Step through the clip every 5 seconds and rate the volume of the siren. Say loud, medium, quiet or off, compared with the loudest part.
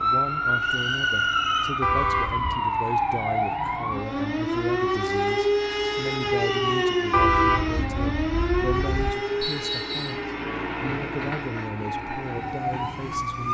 loud, loud, medium.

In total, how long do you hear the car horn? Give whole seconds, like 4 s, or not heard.
3 s.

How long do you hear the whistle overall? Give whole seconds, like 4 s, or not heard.
3 s.